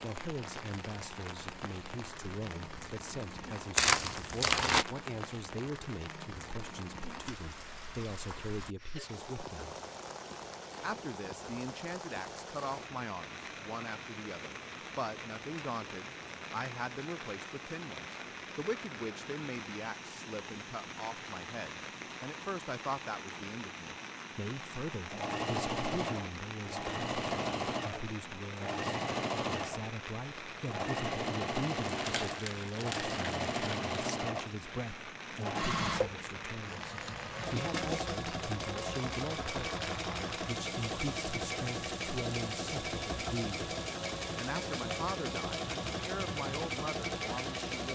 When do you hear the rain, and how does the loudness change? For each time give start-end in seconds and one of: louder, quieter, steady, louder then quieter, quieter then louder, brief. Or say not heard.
0.0-47.9 steady.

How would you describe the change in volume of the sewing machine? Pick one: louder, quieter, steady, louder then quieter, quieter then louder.
steady.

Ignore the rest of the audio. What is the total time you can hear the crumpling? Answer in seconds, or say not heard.
3 s.